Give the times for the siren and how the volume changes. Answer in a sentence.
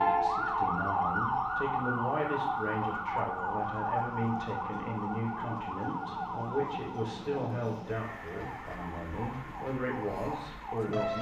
The siren can be heard from 0.0 to 11.1 s, getting quieter.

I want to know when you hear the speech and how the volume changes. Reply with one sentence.
The speech can be heard from 0.0 to 11.1 s, at a steady volume.